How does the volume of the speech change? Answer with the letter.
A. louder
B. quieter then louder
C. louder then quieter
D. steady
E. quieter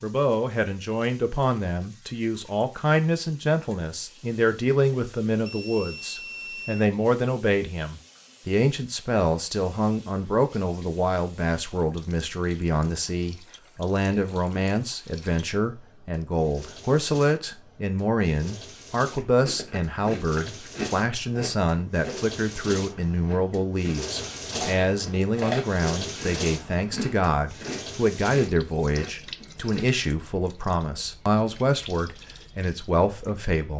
D.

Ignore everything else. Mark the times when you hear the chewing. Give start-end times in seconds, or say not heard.
19.1-30.0.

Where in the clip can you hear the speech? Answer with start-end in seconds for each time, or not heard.
0.0-33.7.